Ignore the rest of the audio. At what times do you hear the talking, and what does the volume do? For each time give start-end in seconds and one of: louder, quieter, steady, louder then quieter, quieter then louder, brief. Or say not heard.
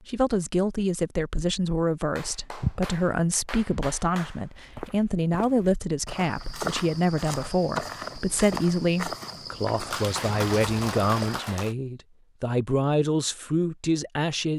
0.1-14.5 steady.